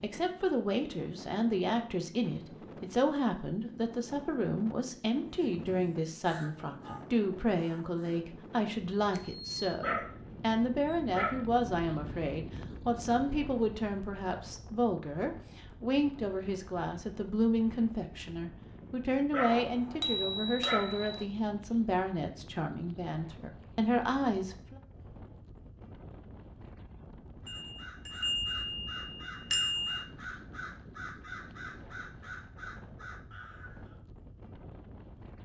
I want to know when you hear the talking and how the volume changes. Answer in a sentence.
The talking can be heard from 0.0 to 24.8 s, at a steady volume.